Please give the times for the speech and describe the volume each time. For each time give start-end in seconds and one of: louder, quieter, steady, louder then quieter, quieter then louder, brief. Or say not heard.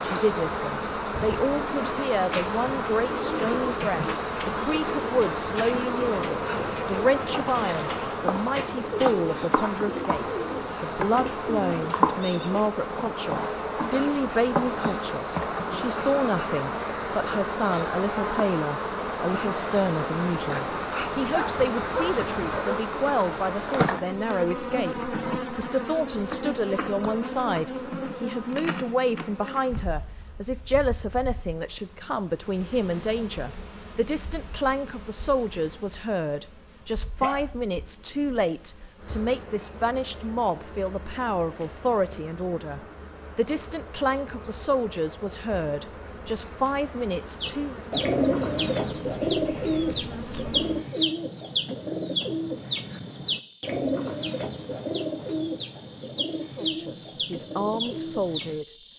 0.0-47.8 steady
56.5-58.7 brief.